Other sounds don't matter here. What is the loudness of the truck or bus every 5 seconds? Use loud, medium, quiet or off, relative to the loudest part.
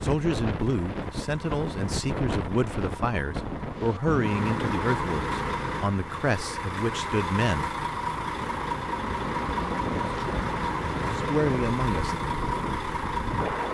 medium, loud, loud.